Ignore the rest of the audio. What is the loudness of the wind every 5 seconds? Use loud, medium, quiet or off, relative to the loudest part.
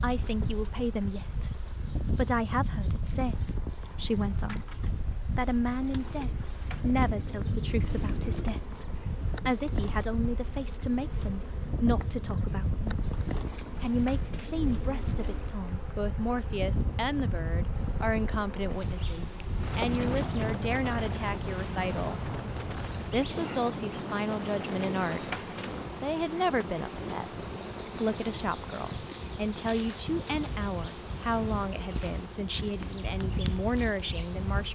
loud, loud, loud, loud, loud, medium, medium.